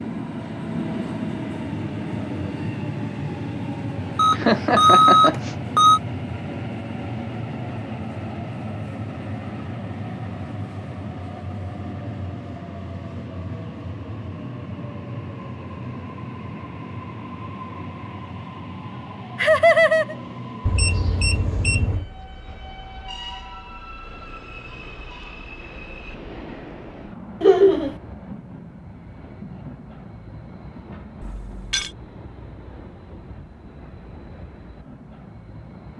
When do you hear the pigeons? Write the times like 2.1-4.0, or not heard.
not heard.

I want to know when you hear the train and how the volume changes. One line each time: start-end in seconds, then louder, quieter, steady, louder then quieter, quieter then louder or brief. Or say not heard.
0.0-35.9 quieter.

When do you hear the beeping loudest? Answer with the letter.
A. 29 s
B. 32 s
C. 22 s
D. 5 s
D.